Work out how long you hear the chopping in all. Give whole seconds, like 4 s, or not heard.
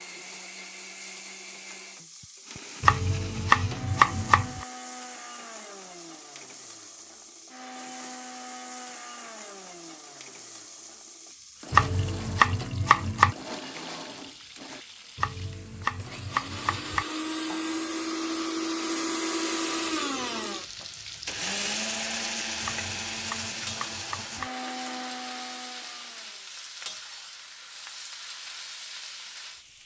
7 s.